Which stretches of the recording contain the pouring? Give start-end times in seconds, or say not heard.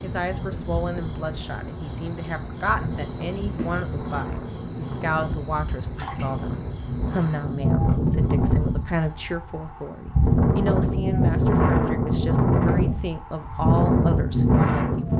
5.8-6.3.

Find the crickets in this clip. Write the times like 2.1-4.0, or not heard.
0.0-9.3.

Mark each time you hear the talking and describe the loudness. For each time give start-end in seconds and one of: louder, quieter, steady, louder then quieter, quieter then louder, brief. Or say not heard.
0.0-15.1 steady.